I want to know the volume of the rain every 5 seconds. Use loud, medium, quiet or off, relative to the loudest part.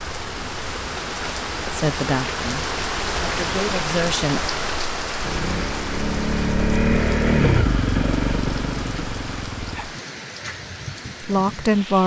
loud, medium, medium.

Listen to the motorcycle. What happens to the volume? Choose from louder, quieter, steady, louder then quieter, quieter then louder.
louder then quieter.